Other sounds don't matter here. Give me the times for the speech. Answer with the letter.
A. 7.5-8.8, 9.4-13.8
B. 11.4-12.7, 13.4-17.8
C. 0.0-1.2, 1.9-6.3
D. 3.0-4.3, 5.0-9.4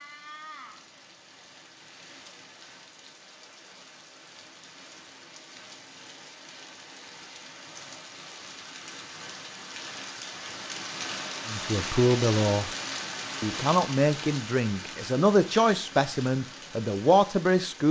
B.